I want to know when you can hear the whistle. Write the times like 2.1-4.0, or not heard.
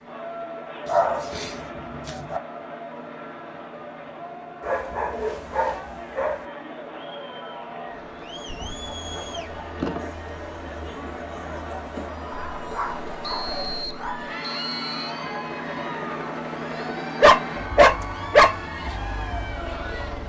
13.2-15.1.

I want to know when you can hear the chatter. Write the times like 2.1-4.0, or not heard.
0.0-20.2.